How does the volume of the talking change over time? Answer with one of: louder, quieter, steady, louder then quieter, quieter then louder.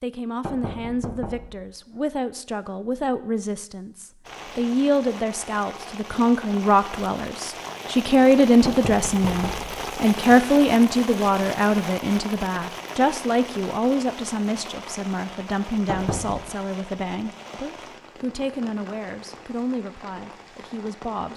louder then quieter.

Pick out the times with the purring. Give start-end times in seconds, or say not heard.
not heard.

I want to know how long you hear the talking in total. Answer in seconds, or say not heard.
21 s.